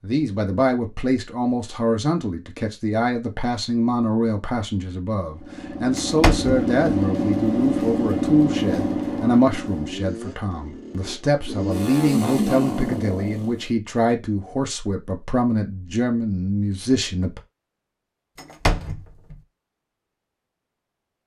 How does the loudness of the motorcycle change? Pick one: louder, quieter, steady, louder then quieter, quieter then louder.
quieter then louder.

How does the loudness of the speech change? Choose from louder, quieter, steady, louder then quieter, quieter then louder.
steady.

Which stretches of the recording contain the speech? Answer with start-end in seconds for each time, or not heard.
0.0-17.4.